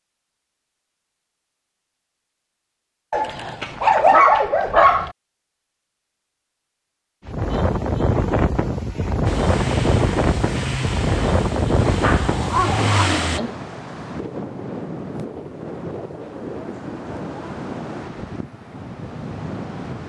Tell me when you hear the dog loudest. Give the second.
4 s.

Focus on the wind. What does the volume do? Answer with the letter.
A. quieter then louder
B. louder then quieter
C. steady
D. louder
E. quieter
E.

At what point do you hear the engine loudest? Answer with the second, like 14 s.
13 s.